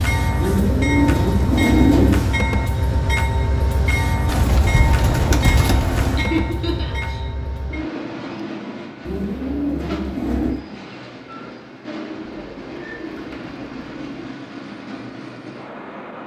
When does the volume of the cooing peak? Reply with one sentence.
The loudest moment of the cooing is at 2 seconds.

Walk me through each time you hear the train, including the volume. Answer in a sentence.
The train can be heard from 0.0 to 16.2 s, getting quieter.